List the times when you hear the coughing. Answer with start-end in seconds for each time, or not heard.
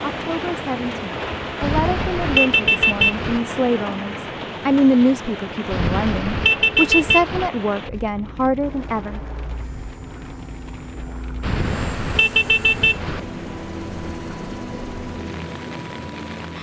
not heard.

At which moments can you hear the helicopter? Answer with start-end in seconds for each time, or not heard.
8.6-16.5.